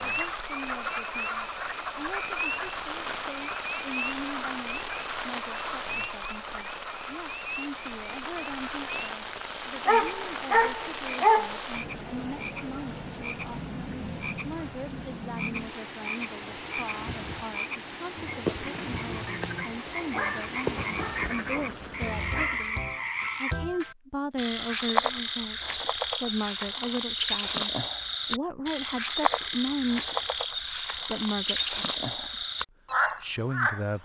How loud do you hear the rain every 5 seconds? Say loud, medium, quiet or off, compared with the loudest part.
loud, loud, loud, loud, loud, off, off.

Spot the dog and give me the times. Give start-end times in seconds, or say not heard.
9.8-11.6, 20.1-21.3, 22.1-22.6.